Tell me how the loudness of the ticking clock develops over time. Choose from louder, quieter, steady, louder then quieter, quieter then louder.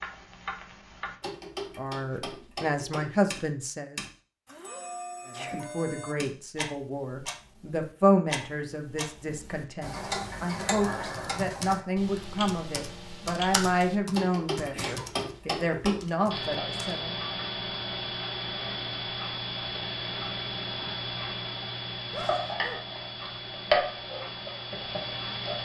louder.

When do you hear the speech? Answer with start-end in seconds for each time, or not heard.
1.8-4.0, 5.2-17.2.